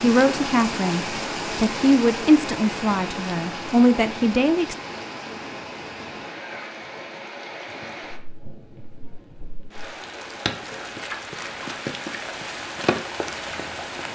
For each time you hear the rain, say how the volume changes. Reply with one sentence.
You can hear the rain from 0.0 to 14.0 s, getting quieter then louder.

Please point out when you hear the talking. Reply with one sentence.
You can hear the talking from 0.0 to 4.8 s.